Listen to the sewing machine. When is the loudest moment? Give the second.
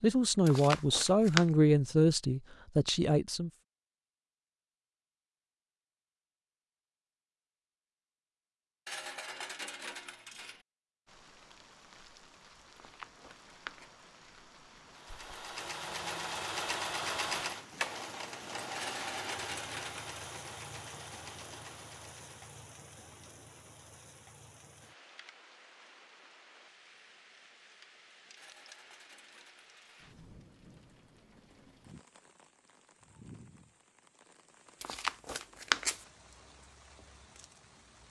17 s.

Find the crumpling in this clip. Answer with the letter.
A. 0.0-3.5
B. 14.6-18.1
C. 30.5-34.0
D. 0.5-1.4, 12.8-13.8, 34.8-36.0
D.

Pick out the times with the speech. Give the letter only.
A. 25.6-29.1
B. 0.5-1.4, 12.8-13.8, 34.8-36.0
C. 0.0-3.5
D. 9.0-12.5
C.